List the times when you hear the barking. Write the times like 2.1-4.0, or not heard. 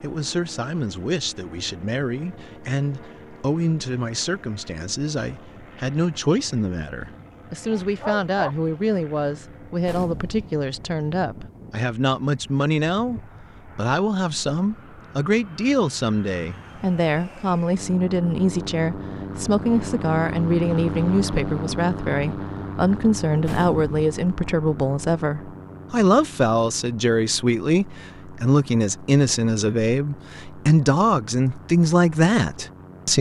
7.8-8.6.